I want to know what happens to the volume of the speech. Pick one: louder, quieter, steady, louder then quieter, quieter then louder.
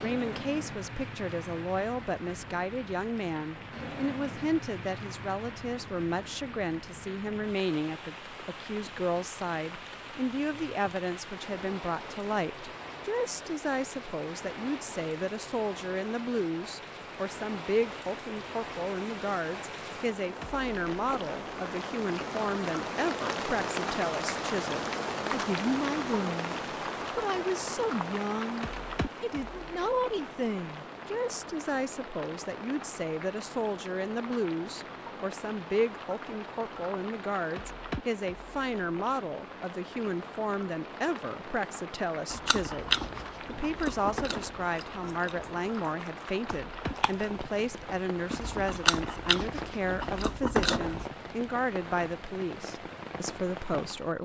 steady.